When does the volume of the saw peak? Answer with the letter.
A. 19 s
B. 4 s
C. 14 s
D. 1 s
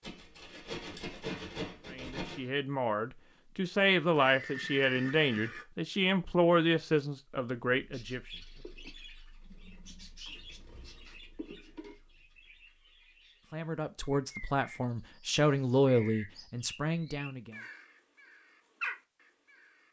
D.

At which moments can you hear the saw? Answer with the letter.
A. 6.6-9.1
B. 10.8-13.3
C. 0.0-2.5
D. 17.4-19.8
C.